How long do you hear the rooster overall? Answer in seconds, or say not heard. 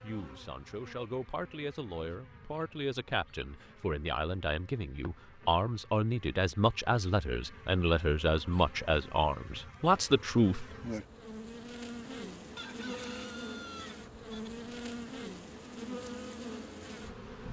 2 s.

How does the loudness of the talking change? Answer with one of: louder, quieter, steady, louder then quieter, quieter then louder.
louder.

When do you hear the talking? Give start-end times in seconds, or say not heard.
0.0-10.7.